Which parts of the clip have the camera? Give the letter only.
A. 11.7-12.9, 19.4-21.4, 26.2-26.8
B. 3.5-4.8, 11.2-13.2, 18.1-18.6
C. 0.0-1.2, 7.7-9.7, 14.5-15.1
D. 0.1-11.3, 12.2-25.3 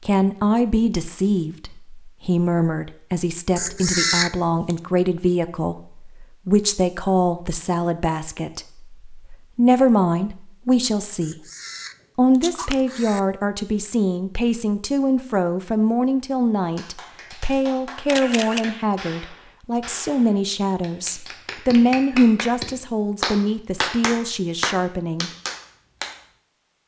B.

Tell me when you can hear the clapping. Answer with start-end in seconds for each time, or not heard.
16.6-26.1.